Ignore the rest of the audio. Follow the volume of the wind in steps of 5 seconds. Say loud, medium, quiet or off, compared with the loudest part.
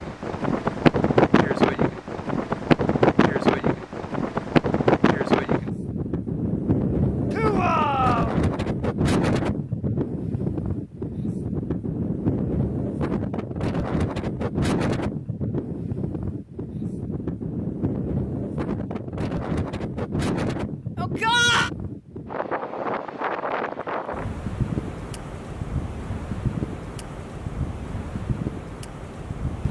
loud, loud, medium, medium, medium, medium.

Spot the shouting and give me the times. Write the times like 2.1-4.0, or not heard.
7.3-8.3, 20.9-21.7.